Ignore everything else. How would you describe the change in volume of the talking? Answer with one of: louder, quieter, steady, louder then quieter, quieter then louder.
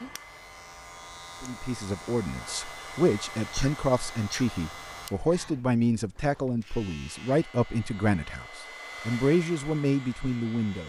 steady.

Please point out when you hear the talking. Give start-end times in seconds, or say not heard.
1.4-10.8.